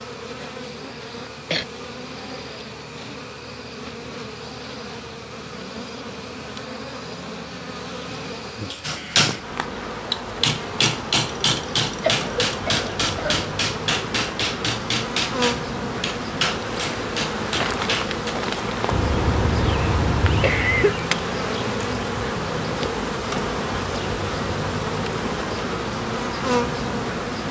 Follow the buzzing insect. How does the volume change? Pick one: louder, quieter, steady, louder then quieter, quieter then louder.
louder.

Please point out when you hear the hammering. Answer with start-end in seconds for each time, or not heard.
8.8-18.4.